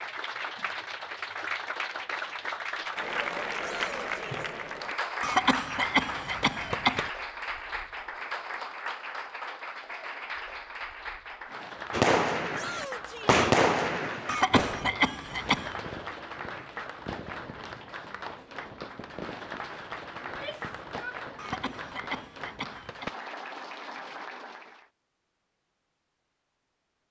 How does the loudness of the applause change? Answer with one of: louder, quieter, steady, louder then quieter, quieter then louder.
quieter.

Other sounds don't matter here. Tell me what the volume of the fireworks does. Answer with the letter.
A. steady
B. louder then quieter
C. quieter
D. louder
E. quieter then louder
C.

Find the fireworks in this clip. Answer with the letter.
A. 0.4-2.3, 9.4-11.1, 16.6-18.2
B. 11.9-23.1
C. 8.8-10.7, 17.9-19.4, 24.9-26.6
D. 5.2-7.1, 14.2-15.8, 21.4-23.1
B.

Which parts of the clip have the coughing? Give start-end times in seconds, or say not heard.
5.2-7.1, 14.2-15.8, 21.4-23.1.